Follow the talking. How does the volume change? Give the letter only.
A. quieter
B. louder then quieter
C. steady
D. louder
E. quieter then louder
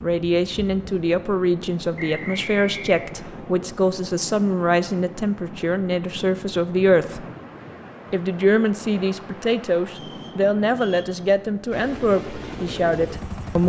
C.